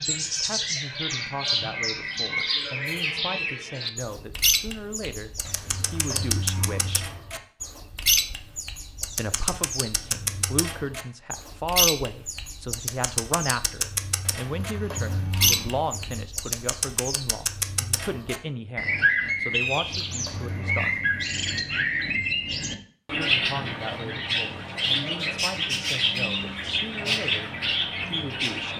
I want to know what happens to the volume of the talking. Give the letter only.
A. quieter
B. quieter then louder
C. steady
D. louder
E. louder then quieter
E.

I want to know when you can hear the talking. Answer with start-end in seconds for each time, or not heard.
0.0-7.1, 9.2-21.0, 23.1-28.7.